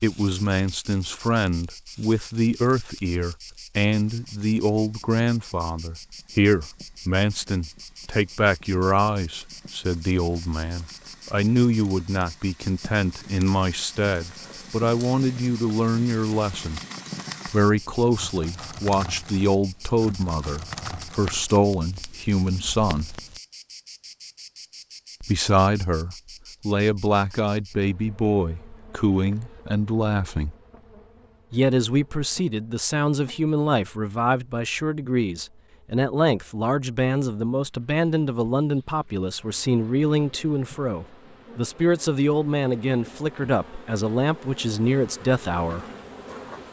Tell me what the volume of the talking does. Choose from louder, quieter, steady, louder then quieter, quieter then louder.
steady.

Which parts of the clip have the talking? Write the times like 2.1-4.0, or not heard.
0.0-16.8, 17.4-23.1, 25.2-30.6, 31.5-45.9.